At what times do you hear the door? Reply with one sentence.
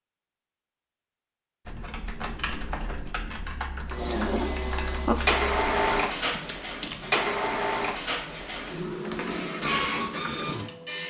You can't hear the door here.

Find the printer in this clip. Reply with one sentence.
You can hear the printer from 3.9 to 11.0 s.